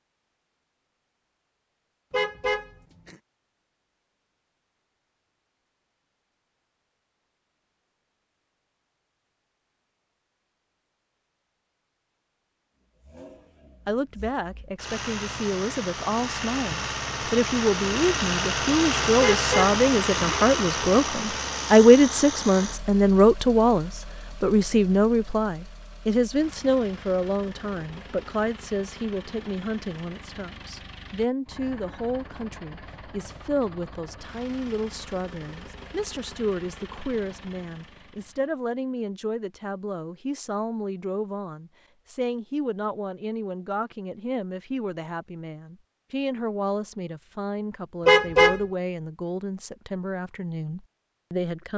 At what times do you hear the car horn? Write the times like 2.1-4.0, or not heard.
2.1-3.1, 19.2-20.3, 48.0-48.6.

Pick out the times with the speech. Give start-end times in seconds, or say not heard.
13.8-51.7.